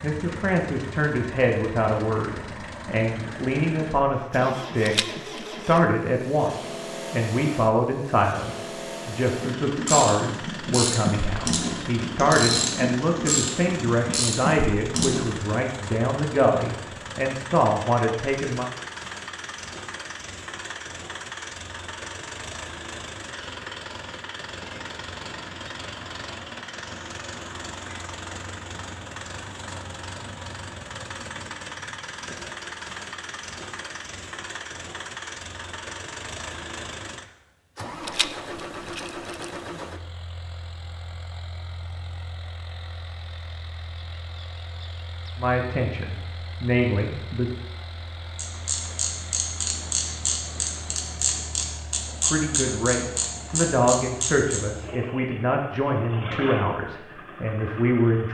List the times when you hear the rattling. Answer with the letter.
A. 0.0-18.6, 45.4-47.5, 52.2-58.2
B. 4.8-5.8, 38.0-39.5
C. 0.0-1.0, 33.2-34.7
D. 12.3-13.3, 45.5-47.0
B.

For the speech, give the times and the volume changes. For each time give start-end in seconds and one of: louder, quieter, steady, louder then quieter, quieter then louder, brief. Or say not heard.
0.0-18.6 steady
45.4-47.5 brief
52.2-58.2 quieter.